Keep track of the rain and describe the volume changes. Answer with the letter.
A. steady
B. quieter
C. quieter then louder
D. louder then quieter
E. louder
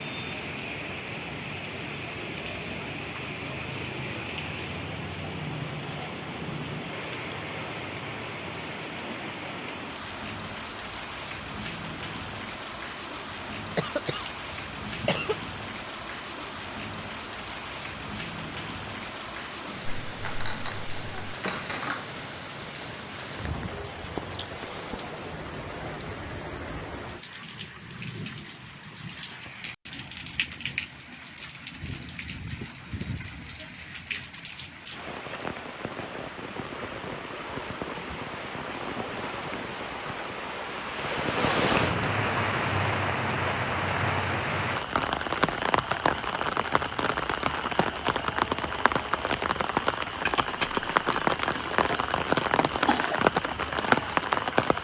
E.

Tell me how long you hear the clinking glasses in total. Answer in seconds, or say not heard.
3 s.